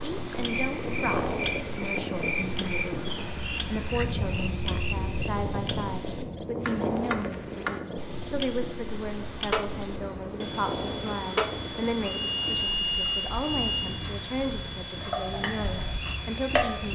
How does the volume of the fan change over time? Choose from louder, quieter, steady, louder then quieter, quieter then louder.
quieter.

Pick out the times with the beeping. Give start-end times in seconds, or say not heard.
3.0-4.5, 12.1-14.0.